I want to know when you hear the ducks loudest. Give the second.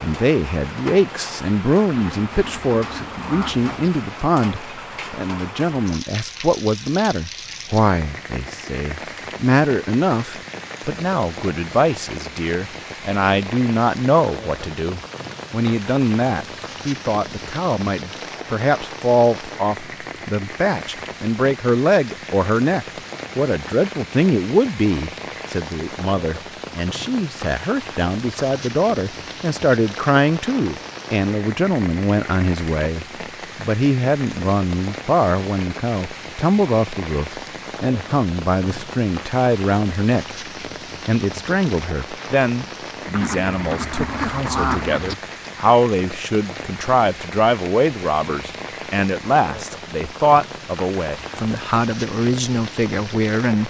45 s.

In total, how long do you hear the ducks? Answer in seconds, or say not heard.
4 s.